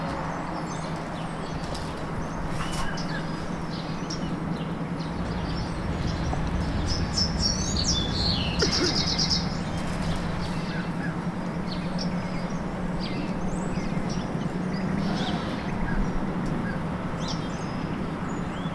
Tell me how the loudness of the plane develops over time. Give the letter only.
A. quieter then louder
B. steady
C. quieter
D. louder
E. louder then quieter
B.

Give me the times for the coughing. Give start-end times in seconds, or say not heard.
8.6-9.1.